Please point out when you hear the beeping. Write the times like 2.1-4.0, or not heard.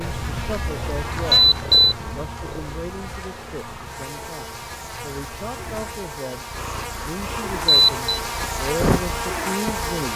1.1-1.9, 7.4-8.2.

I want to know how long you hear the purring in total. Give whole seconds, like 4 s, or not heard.
10 s.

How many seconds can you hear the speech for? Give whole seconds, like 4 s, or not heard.
10 s.